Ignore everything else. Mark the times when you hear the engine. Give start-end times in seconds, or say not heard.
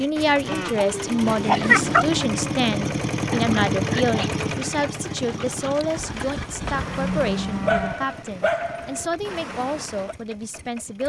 0.0-11.0.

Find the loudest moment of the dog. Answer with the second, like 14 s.
2 s.